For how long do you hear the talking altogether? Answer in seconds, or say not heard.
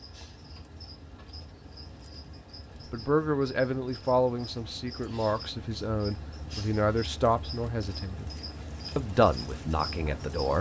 7 s.